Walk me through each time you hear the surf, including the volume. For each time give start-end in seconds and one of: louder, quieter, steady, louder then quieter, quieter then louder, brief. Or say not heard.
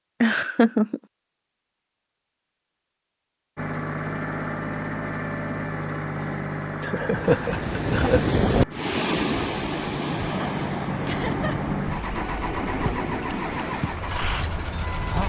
6.9-15.2 quieter.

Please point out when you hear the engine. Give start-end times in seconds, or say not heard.
3.5-15.2.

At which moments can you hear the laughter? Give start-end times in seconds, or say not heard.
0.2-1.0, 6.8-8.2, 11.1-11.6.